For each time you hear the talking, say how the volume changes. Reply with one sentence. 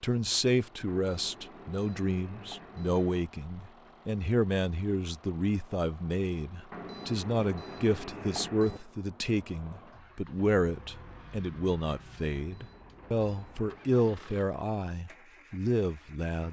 You can hear the talking from 0.0 to 16.4 s, at a steady volume.